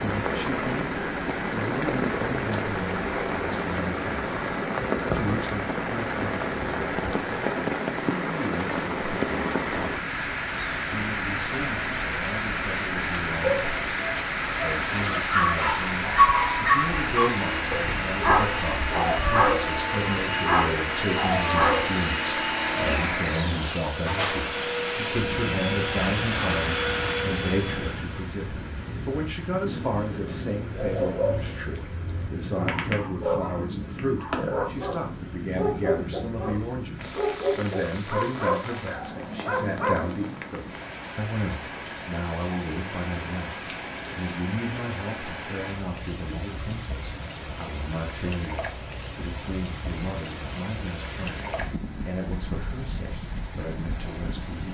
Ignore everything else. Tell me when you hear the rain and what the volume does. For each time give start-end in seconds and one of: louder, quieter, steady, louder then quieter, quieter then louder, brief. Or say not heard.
0.0-54.6 quieter.